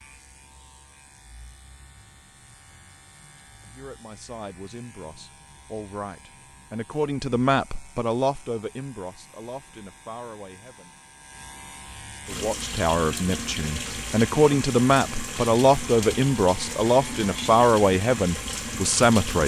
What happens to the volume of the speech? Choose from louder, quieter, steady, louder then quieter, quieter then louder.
louder.